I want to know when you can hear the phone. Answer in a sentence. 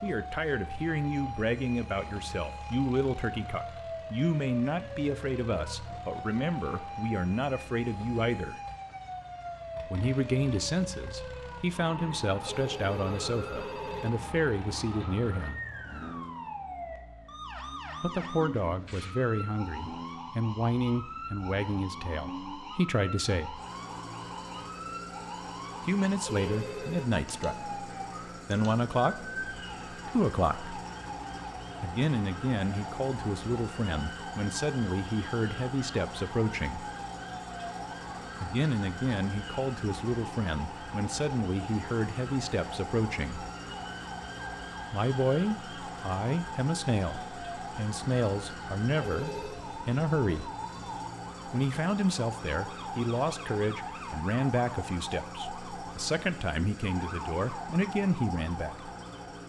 You can hear the phone from 12.4 to 14.1 s, from 26.2 to 27.1 s and from 49.0 to 49.6 s.